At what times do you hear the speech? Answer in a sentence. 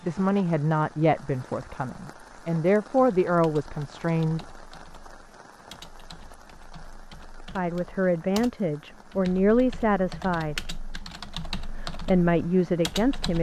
The speech can be heard from 0.0 to 4.5 s, from 7.5 to 10.7 s and from 11.8 to 13.3 s.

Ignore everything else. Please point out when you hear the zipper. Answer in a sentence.
The zipper can't be heard in this clip.